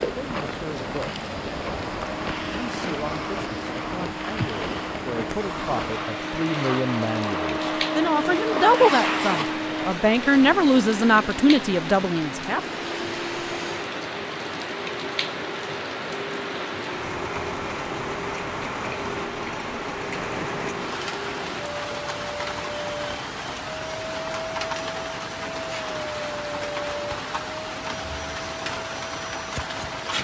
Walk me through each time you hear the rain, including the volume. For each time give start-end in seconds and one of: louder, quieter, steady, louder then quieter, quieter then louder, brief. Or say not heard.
0.0-30.1 steady.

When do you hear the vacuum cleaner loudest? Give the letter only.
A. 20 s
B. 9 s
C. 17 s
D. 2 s
B.